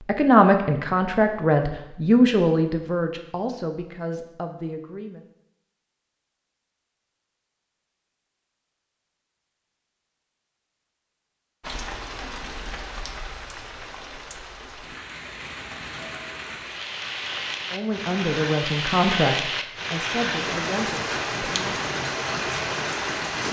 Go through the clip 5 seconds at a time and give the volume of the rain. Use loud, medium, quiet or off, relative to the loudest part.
off, off, medium, loud, loud.